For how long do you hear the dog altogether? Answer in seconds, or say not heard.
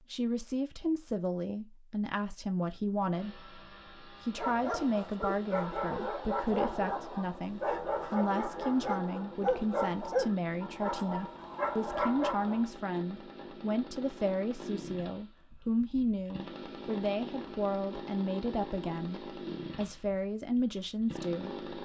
8 s.